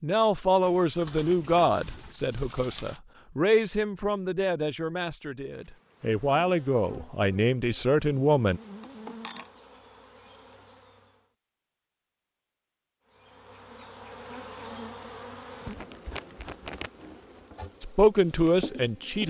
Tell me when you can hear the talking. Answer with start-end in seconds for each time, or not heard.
0.0-8.6, 17.8-19.2.